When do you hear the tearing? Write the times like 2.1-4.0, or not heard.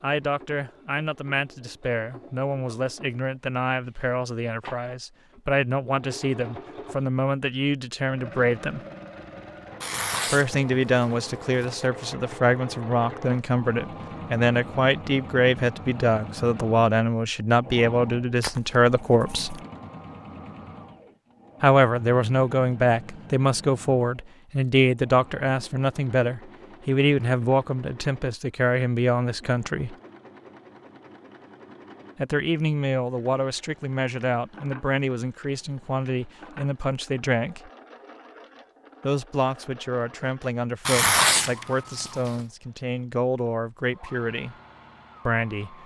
9.8-11.8, 18.4-19.6, 40.9-42.4.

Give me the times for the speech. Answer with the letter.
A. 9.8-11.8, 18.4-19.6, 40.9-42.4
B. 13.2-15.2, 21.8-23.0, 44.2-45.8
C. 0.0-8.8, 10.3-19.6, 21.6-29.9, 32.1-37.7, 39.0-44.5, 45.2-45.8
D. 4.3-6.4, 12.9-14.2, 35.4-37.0
C.